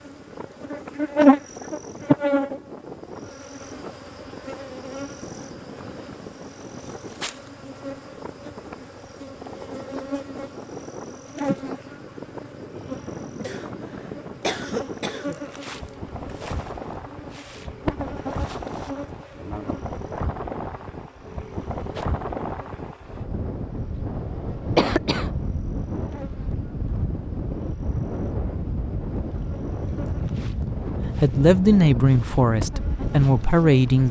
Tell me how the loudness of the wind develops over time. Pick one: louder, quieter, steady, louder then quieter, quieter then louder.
louder.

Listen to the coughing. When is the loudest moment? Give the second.
25 s.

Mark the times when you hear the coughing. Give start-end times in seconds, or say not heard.
13.4-15.4, 24.8-25.4.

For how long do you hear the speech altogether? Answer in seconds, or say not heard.
3 s.